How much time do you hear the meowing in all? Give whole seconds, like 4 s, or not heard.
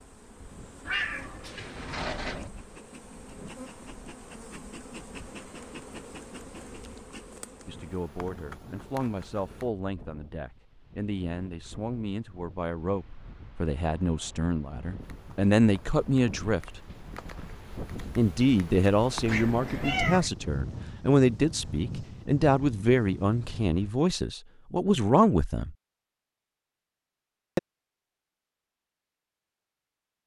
3 s.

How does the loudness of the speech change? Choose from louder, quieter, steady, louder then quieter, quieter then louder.
louder.